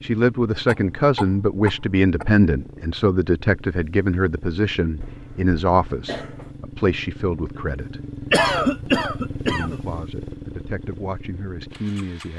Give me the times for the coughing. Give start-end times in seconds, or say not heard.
0.7-2.4, 5.0-6.5, 8.3-9.9.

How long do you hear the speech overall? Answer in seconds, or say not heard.
11 s.